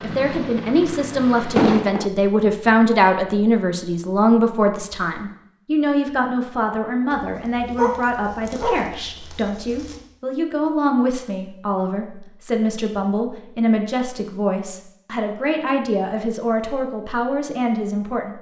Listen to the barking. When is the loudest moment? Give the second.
8 s.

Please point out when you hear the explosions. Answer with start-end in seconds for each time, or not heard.
1.6-2.1.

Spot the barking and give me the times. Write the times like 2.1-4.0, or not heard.
7.1-9.9.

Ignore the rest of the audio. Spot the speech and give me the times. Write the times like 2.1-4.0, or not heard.
0.0-18.3.